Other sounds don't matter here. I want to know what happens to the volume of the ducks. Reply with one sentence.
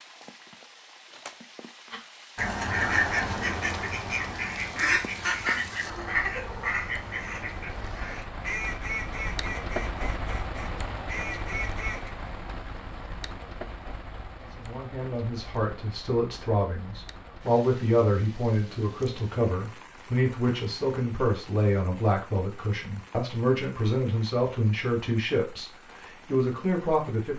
The loudness of the ducks goes down.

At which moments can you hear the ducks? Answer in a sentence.
You can hear the ducks from 1.9 to 12.1 s.